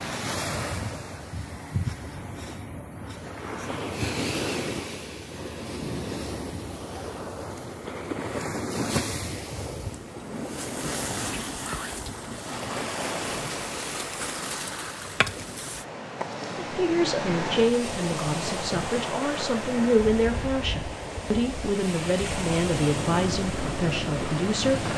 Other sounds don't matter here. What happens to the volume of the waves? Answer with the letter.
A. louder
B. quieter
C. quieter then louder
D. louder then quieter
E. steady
E.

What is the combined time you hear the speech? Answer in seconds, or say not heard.
8 s.